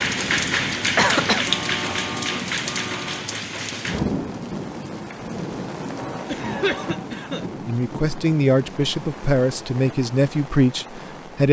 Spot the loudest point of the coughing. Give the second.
1 s.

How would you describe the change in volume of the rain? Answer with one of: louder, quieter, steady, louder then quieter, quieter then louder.
quieter.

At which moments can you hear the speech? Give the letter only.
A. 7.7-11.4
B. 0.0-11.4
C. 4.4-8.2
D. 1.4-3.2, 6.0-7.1
A.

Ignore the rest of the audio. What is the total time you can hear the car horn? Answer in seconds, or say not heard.
3 s.